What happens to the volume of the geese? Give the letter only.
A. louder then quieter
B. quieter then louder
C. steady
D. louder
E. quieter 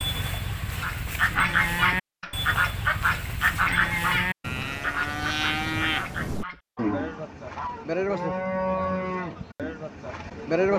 E.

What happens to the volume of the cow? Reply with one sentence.
The loudness of the cow stays about the same.